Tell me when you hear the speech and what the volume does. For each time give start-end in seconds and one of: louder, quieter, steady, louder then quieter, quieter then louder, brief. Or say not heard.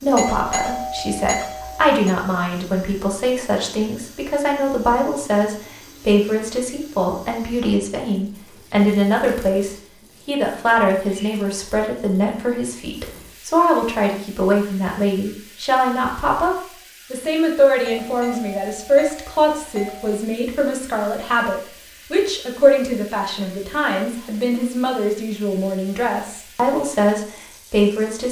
0.0-28.2 steady.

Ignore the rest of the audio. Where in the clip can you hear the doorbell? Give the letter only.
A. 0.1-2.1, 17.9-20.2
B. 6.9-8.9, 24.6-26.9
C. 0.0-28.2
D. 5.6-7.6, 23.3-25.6
A.